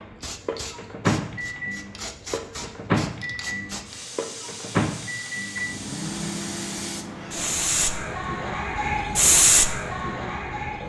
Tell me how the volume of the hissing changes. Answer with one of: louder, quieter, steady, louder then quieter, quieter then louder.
louder.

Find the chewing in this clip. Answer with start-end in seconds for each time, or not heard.
not heard.